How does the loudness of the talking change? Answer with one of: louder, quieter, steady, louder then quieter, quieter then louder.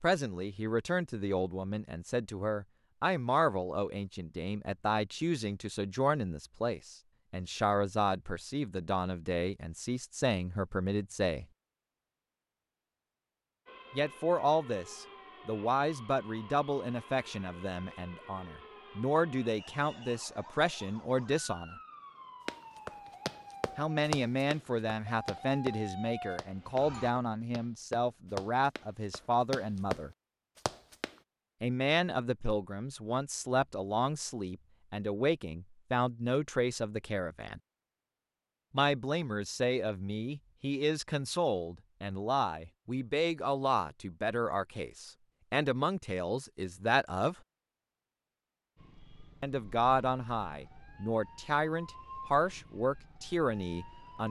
steady.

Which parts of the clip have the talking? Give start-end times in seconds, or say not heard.
0.0-11.4, 13.9-21.8, 23.8-30.1, 31.6-37.6, 38.7-47.4, 49.4-54.2.